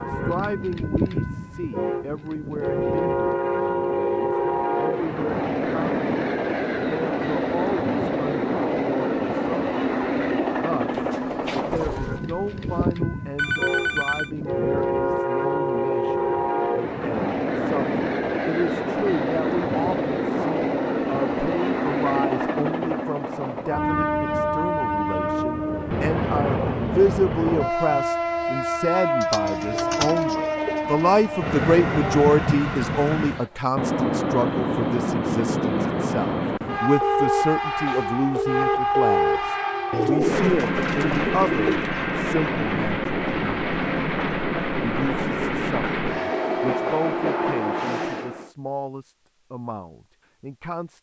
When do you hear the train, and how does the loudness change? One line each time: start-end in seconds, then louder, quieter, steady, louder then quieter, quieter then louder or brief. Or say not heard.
0.0-48.5 steady.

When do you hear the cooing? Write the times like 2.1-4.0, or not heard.
10.9-12.9, 29.2-31.4, 39.9-41.9.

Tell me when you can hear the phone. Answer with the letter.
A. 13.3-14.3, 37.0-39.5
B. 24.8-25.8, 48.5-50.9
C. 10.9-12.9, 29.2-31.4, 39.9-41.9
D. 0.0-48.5
A.